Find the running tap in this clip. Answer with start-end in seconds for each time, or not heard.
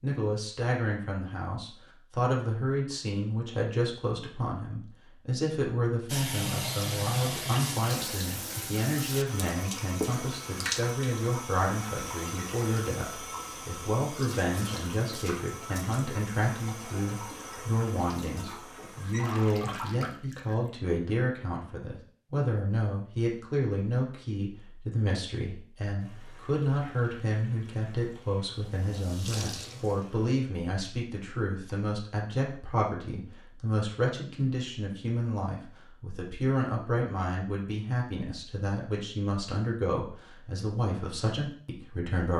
6.0-20.7, 25.9-30.3.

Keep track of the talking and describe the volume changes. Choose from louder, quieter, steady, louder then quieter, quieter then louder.
steady.